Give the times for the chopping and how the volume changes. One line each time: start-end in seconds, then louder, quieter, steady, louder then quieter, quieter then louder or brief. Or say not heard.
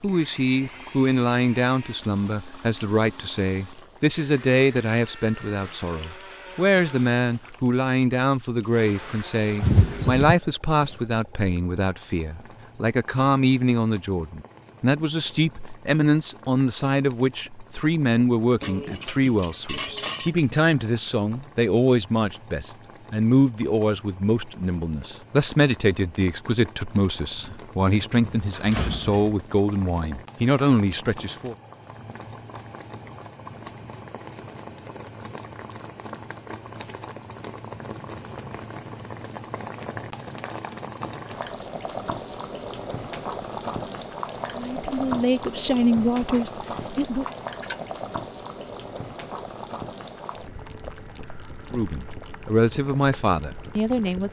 not heard.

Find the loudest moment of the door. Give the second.
10 s.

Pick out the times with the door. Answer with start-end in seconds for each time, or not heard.
9.6-10.3, 27.4-29.4.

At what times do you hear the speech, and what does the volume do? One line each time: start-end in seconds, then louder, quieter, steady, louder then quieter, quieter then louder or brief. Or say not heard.
0.0-31.6 steady
44.5-47.2 brief
51.7-54.2 brief.